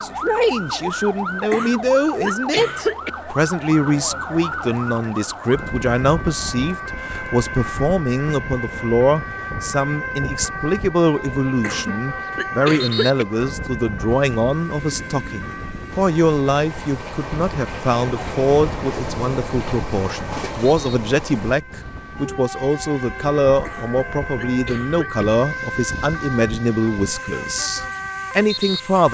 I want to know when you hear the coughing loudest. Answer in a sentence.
The loudest moment of the coughing is at 3 seconds.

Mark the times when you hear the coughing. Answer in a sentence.
The coughing can be heard from 1.5 to 3.1 s, from 11.6 to 13.2 s and from 23.6 to 25.2 s.